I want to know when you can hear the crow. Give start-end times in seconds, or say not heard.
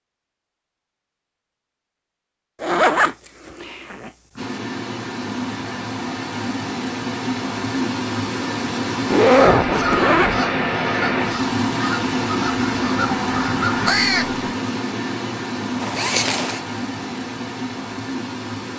9.3-14.5.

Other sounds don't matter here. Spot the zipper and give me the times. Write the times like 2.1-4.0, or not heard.
2.6-4.1, 9.1-10.4, 15.8-16.6.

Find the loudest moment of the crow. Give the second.
14 s.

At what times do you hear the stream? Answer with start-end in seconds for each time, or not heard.
4.3-18.7.